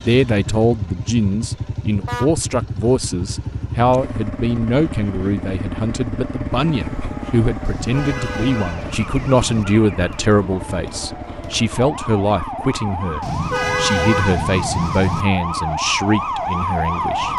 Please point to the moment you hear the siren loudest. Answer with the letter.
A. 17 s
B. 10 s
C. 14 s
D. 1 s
A.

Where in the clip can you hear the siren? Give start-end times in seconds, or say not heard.
6.7-17.3.